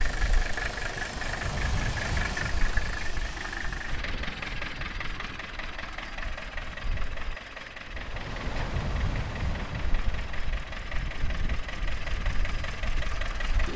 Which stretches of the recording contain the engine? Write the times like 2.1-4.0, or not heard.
0.0-13.7.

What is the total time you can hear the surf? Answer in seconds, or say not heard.
14 s.